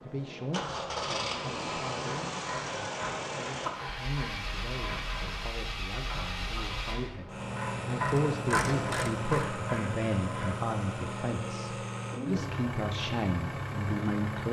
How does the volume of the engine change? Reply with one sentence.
The volume of the engine stays about the same.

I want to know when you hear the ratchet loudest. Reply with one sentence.
The loudest moment of the ratchet is at 9 seconds.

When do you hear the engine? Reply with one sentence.
You can hear the engine from 0.0 to 14.4 s.